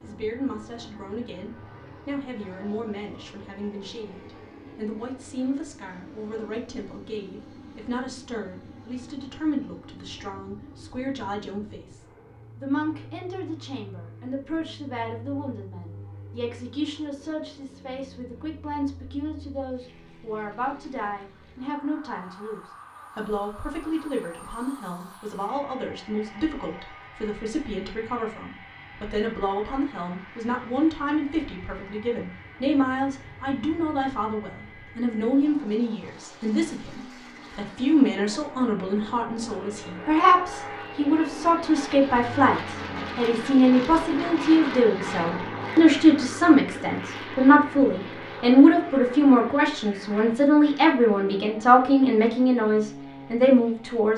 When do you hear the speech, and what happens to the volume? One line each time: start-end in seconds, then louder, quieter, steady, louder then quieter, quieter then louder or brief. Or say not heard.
0.0-54.1 louder.